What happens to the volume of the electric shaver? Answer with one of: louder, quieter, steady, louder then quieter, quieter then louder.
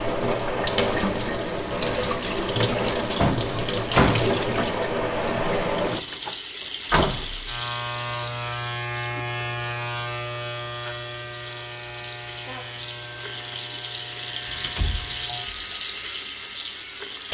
quieter.